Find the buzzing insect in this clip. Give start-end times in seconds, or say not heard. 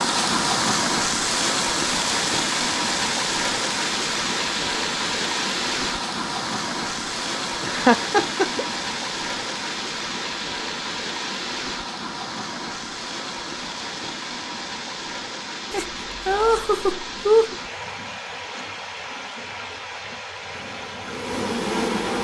20.5-22.1.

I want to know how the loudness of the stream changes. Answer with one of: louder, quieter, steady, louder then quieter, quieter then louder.
quieter.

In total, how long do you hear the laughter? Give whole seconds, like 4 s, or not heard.
3 s.